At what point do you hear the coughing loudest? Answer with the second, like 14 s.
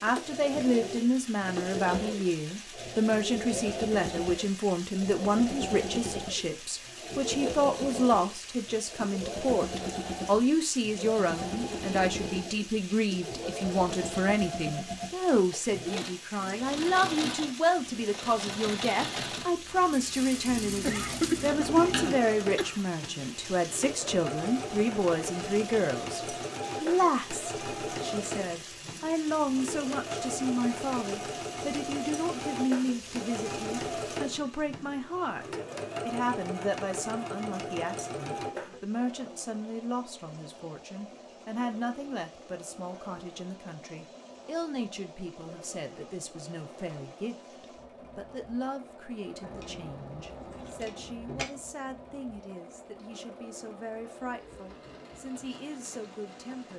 21 s.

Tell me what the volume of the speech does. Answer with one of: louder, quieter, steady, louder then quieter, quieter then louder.
quieter.